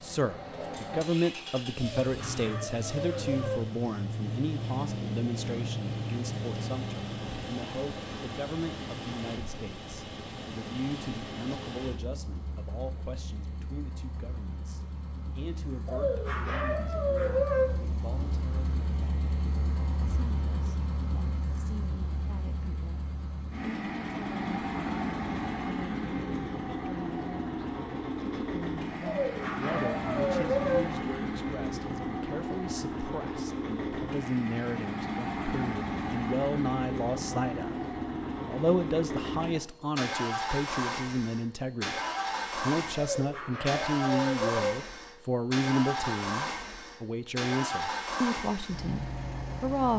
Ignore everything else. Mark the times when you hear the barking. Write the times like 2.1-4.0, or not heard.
1.8-3.7, 15.8-17.8, 29.0-30.9, 43.1-44.8.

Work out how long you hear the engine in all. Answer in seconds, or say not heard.
50 s.